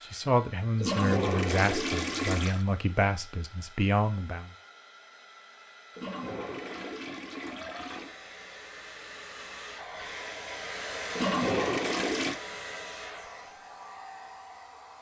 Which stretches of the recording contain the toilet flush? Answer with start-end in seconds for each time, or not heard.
0.8-2.6, 6.0-8.1, 11.1-12.4.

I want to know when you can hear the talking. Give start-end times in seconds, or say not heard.
0.0-4.5.